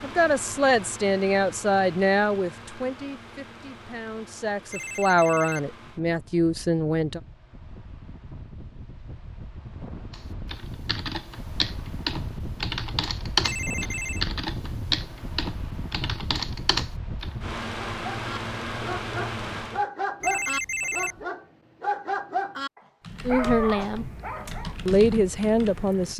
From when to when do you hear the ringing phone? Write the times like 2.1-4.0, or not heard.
4.7-5.7, 13.4-14.2, 20.2-21.2.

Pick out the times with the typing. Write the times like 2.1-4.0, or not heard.
10.1-17.4, 23.0-26.1.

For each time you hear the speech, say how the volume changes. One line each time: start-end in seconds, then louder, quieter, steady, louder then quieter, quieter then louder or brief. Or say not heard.
0.0-7.2 quieter then louder
23.2-24.1 brief
24.9-26.1 brief.